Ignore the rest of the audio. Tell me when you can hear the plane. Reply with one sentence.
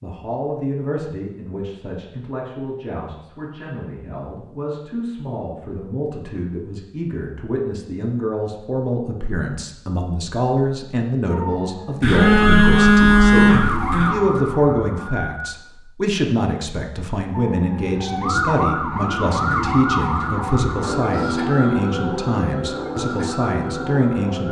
The plane can't be heard in this clip.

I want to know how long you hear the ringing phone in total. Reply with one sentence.
The ringing phone can be heard for 2 seconds in total.